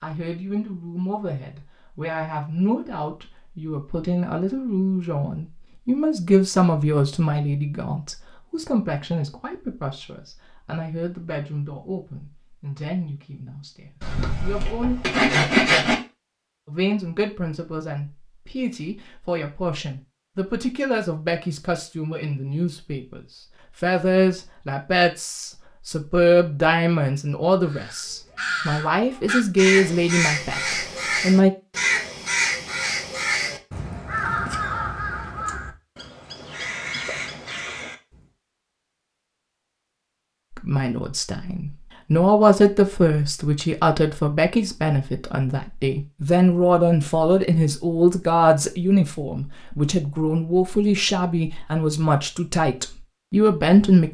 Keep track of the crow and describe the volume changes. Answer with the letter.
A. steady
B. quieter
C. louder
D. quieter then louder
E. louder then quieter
B.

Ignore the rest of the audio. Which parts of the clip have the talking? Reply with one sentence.
You can hear the talking from 0.0 to 14.9 s, from 16.6 to 23.2 s, from 23.8 to 31.5 s and from 40.5 to 54.0 s.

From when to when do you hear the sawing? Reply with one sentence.
You can hear the sawing from 14.0 to 15.9 s.